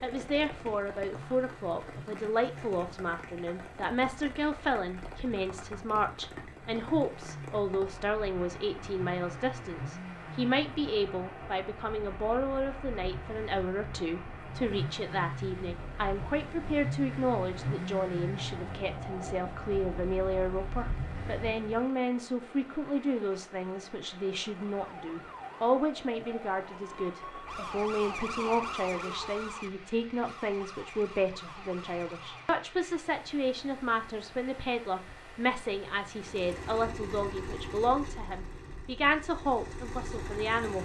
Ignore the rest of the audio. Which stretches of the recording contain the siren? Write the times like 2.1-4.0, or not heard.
24.8-32.6.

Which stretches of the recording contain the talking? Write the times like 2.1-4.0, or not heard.
0.0-40.7.